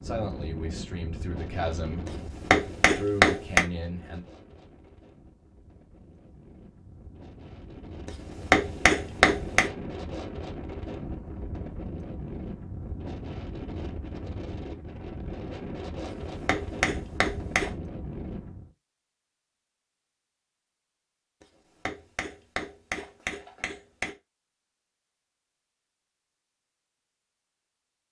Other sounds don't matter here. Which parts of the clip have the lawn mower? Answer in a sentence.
The lawn mower can't be heard in this clip.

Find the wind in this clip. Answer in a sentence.
You can hear the wind from 0.0 to 18.7 s.